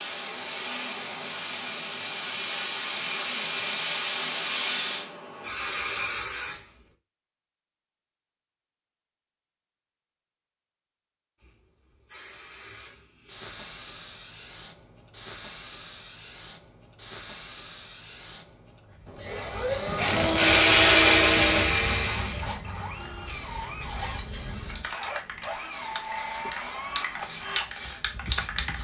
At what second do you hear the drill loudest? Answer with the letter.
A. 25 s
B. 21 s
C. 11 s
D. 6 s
B.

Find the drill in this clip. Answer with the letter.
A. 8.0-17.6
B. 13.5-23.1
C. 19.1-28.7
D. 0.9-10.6
C.